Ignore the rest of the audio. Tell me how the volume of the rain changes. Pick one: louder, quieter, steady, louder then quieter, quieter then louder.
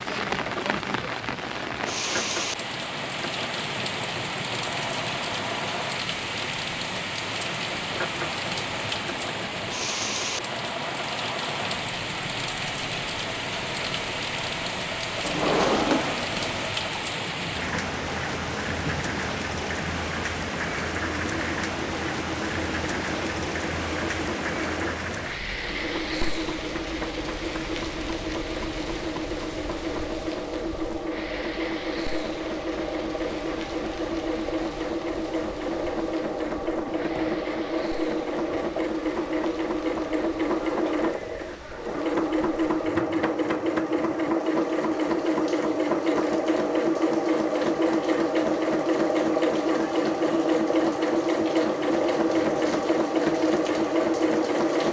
quieter.